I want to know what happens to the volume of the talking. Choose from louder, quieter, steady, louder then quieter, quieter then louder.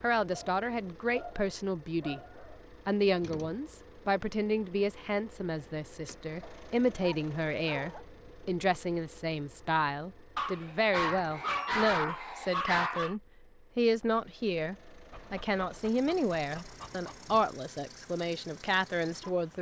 steady.